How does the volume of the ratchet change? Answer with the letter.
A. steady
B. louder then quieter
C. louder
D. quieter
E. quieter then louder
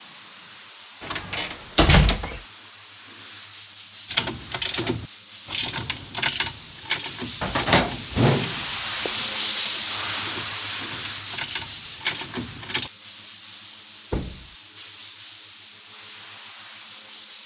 E.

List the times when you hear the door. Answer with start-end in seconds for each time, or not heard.
1.0-2.4, 7.4-9.1, 14.1-14.6.